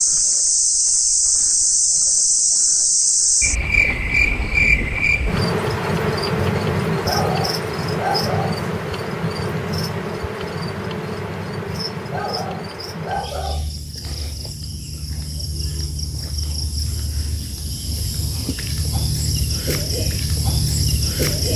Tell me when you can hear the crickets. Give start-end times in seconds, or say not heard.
0.0-21.5.